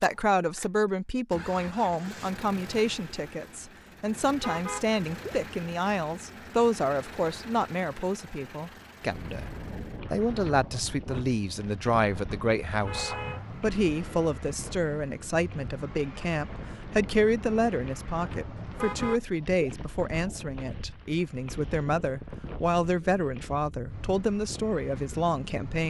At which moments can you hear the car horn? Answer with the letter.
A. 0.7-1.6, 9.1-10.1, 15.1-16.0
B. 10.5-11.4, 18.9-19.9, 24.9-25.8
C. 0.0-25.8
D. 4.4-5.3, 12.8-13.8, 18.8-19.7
D.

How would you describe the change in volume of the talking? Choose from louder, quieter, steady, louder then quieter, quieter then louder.
steady.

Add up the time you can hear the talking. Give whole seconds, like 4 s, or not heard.
26 s.